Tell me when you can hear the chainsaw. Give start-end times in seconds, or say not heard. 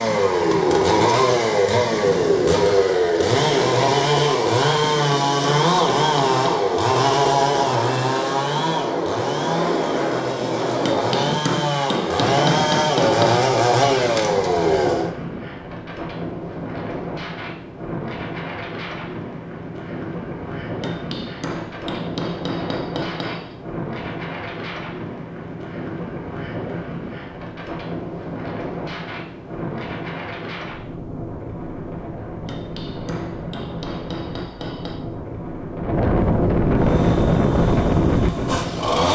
0.0-15.1, 36.8-39.0.